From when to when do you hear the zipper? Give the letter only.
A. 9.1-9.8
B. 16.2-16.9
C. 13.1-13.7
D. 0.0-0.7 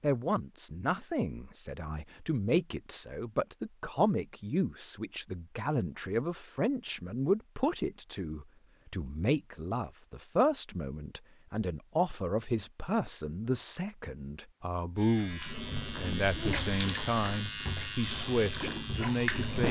B.